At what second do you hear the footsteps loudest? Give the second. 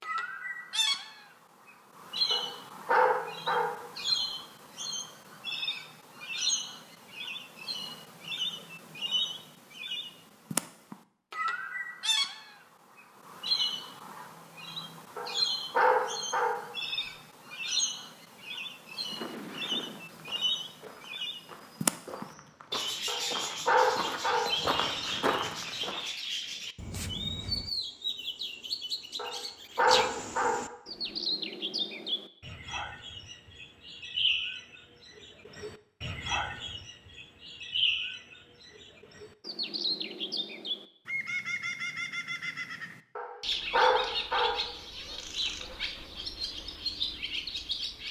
25 s.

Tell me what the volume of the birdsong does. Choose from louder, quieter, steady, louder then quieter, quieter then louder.
steady.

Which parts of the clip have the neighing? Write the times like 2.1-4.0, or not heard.
19.1-20.1.